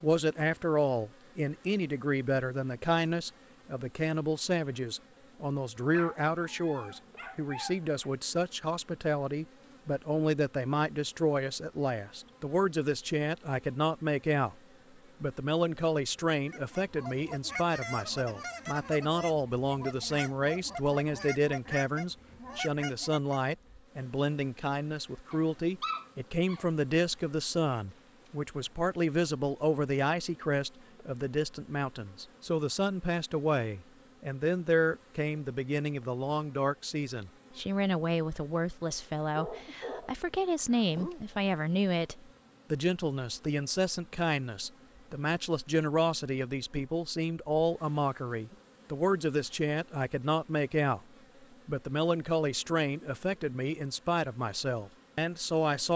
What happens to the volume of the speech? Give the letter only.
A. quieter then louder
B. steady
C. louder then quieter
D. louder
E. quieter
B.